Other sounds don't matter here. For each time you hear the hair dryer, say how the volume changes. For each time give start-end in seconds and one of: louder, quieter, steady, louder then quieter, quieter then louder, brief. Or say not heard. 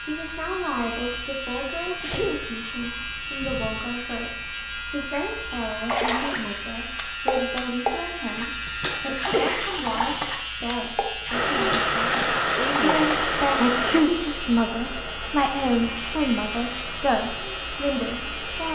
11.3-18.7 quieter.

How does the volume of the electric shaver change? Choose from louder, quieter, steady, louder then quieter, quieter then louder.
steady.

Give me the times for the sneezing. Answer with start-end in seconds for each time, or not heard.
1.9-2.5, 3.4-3.9, 8.7-10.2, 13.6-14.1.